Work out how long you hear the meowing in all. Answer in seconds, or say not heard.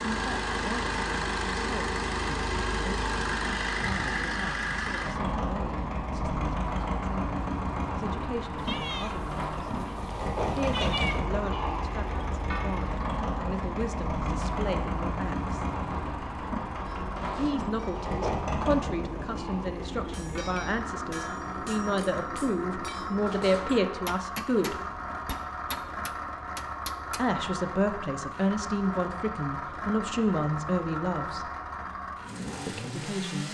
3 s.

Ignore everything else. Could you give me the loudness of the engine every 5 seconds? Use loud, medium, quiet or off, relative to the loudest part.
loud, loud, loud, loud, medium, medium, medium.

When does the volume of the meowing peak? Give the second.
11 s.